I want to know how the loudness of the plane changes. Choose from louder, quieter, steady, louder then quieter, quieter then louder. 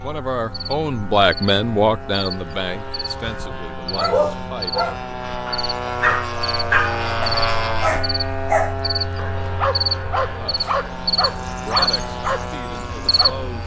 louder then quieter.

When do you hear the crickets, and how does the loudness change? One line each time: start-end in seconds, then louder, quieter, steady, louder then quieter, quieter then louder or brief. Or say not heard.
0.0-13.6 louder.